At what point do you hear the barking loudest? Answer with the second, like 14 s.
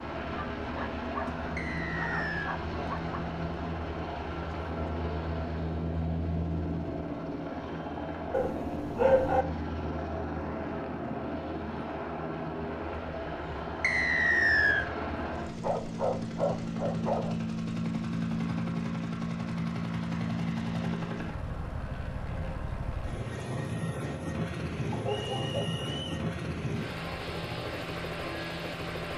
9 s.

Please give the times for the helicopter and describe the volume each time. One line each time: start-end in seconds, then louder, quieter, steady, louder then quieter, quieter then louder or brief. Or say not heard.
0.0-29.1 steady.